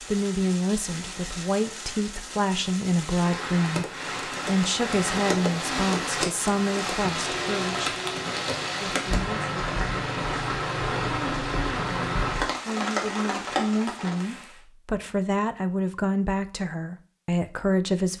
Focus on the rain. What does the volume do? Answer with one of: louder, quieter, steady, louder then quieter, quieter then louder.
louder.